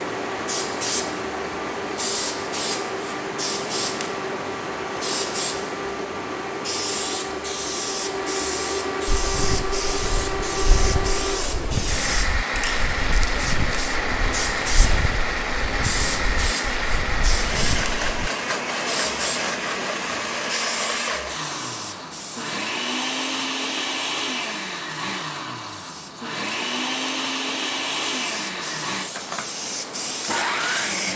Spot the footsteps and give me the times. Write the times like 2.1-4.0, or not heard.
9.1-18.3.